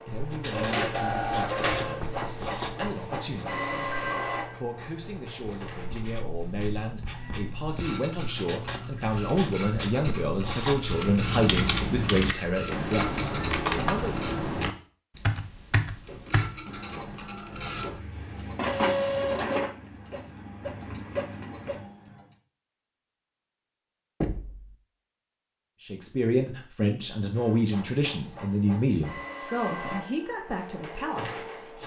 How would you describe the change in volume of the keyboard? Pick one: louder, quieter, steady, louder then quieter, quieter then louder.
quieter.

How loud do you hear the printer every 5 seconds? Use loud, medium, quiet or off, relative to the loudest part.
loud, medium, medium, loud, medium, medium, medium.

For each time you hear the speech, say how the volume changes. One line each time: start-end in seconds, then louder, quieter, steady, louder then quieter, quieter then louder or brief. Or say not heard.
0.1-14.2 louder
25.8-31.8 quieter.